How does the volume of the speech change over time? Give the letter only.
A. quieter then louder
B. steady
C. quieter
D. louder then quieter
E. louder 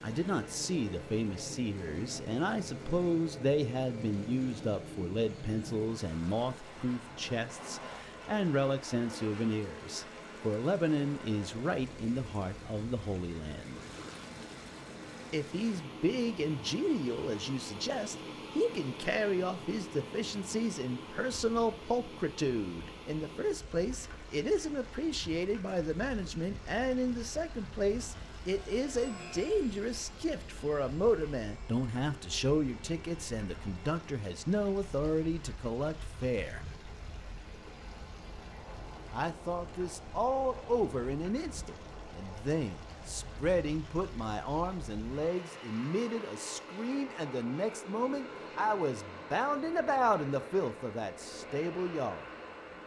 B.